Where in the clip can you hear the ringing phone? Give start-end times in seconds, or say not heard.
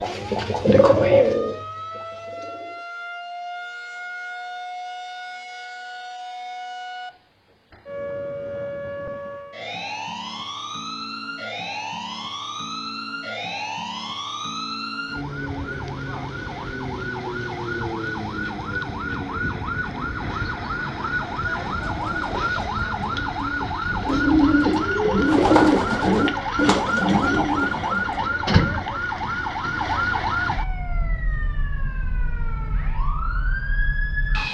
not heard.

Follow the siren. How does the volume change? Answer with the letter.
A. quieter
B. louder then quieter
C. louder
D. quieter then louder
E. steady
C.